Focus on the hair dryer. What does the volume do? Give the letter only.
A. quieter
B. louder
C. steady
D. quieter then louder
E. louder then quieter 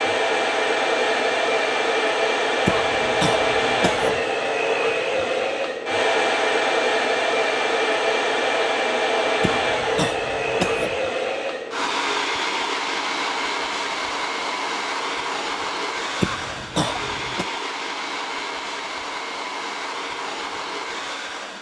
A.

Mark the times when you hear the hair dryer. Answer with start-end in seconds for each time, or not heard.
0.0-21.5.